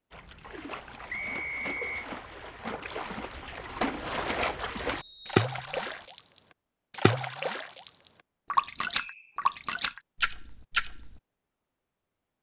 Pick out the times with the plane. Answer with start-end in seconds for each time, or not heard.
not heard.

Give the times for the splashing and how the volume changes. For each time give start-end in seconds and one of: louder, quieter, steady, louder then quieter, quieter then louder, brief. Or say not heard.
0.1-11.2 louder.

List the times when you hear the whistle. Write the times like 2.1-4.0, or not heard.
1.1-2.0, 5.0-6.0, 8.9-9.4.